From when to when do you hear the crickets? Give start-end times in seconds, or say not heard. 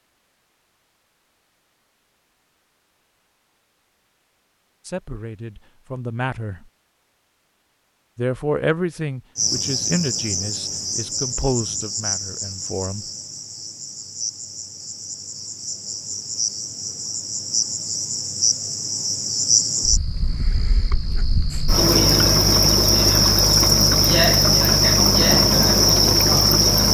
9.3-26.8.